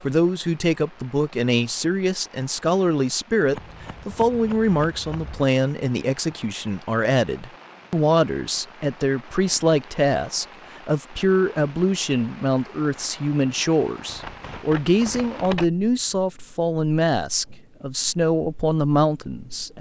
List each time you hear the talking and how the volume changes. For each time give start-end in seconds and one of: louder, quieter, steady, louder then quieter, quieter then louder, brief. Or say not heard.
0.0-19.7 steady.